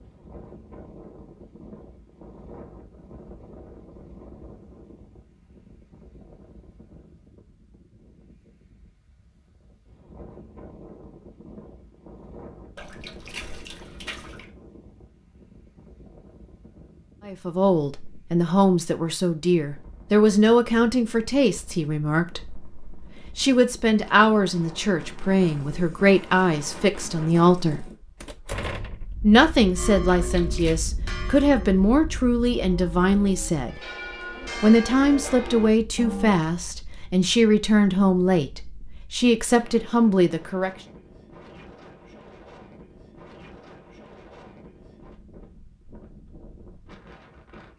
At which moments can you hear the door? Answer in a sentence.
The door can be heard from 28.2 to 29.1 s.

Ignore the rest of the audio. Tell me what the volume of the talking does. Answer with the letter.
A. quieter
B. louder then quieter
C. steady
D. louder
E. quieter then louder
C.